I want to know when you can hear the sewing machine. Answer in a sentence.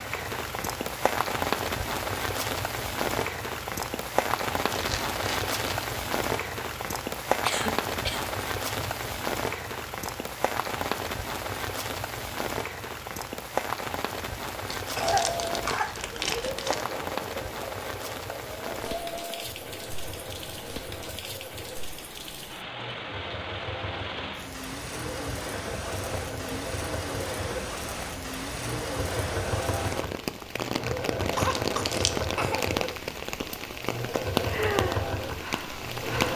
You can hear the sewing machine from 14.9 to 36.3 s.